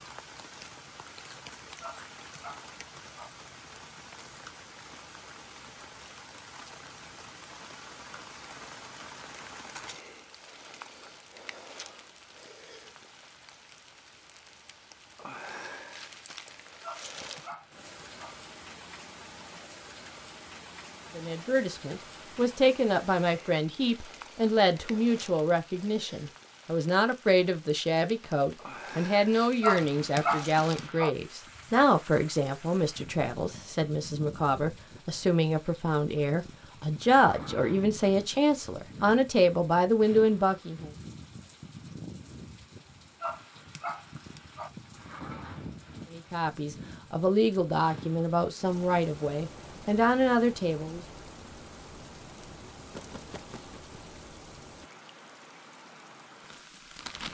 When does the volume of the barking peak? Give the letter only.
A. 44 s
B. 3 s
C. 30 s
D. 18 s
C.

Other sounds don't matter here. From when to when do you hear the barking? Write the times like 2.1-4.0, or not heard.
1.8-3.3, 16.8-18.4, 29.6-31.1, 43.2-44.7.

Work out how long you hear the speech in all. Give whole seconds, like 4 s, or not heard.
25 s.